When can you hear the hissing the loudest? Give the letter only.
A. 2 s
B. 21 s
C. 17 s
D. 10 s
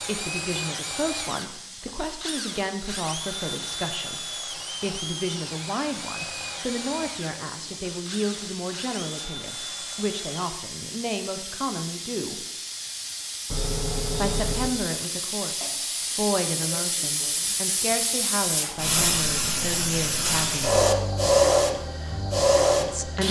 B.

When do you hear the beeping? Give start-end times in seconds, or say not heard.
13.4-14.7.